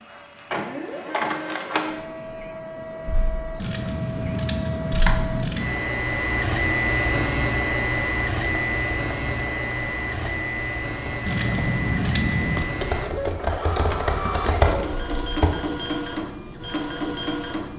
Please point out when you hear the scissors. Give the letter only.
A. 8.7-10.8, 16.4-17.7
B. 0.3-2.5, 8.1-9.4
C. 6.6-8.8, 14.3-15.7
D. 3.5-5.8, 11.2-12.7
D.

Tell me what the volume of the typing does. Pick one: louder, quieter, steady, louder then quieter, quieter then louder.
louder.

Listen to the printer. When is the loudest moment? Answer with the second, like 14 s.
7 s.